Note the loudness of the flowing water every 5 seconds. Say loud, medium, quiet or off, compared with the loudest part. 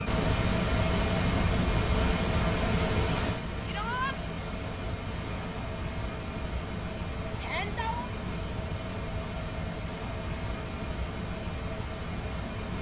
loud, medium, medium.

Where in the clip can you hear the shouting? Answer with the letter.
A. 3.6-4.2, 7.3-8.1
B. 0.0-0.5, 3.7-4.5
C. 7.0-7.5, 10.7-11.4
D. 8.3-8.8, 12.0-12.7
A.